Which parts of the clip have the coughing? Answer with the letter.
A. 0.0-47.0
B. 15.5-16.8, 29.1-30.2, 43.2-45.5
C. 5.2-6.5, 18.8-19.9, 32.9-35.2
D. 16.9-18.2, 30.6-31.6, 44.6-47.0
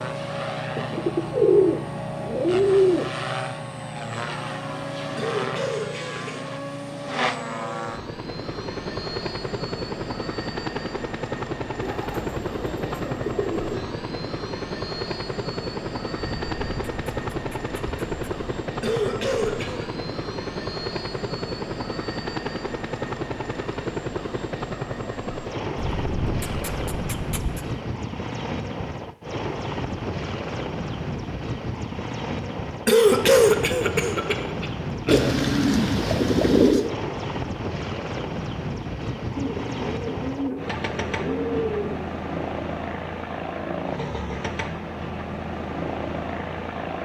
C.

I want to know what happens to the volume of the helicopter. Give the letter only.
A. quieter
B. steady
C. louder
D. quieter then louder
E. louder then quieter
B.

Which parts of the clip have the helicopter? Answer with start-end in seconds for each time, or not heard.
0.0-47.0.